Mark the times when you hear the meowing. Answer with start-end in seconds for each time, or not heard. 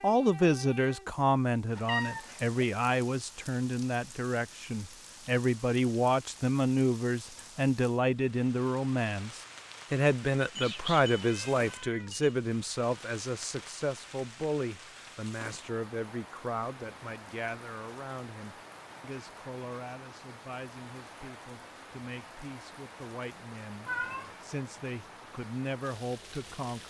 1.8-2.6, 10.4-12.3, 23.9-24.4.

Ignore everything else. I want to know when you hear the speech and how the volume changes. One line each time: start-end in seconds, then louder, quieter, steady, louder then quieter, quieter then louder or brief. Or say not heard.
0.0-26.8 quieter.